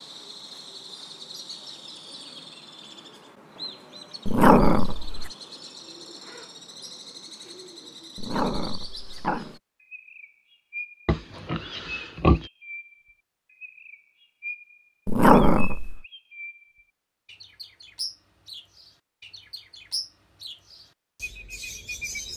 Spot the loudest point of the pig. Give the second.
12 s.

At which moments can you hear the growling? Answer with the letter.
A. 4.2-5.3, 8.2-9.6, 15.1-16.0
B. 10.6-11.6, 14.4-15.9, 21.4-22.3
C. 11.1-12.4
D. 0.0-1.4
A.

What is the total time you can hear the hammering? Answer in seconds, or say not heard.
not heard.